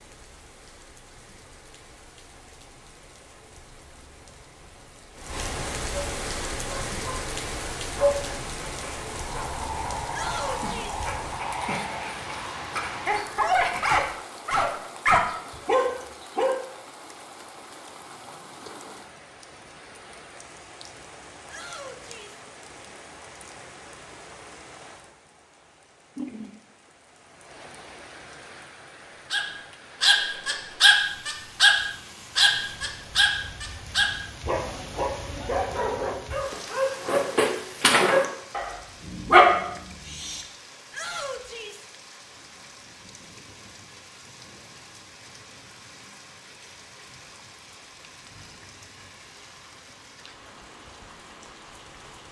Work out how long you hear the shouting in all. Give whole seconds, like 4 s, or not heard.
3 s.